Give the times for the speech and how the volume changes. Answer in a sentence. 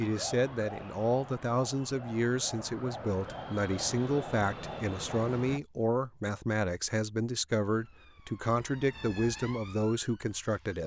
The speech can be heard from 0.0 to 10.8 s, at a steady volume.